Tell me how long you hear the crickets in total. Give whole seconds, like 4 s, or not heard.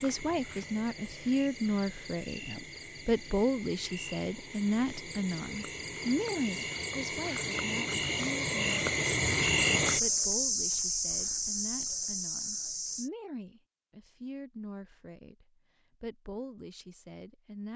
13 s.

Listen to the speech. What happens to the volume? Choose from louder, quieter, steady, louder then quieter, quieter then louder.
quieter.